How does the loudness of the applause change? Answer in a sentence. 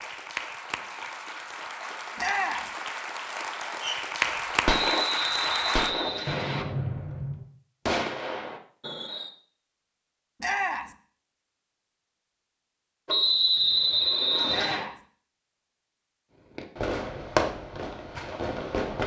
The volume of the applause goes up.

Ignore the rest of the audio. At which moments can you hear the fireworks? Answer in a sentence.
The fireworks can be heard from 3.8 to 9.3 s and from 16.6 to 19.0 s.